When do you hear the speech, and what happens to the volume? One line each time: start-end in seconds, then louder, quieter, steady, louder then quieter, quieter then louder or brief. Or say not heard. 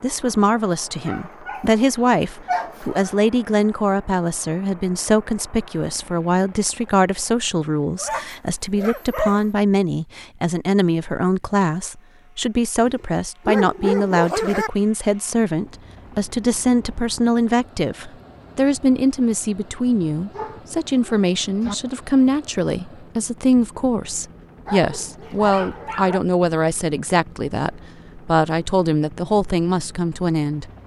0.0-30.6 steady.